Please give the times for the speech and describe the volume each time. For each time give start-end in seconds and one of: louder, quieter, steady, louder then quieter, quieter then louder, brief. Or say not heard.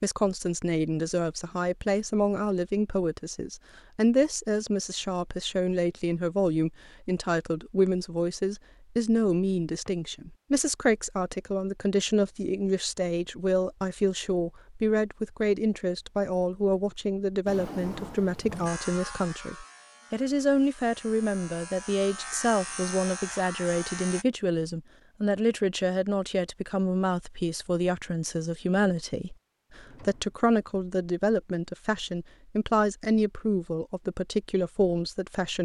0.0-35.6 steady.